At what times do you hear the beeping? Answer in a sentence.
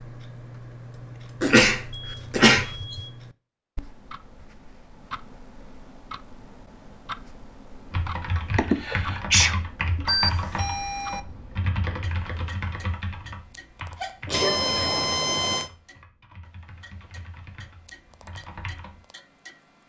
The beeping can be heard from 2.0 to 3.1 s, from 10.1 to 11.2 s and from 14.3 to 15.7 s.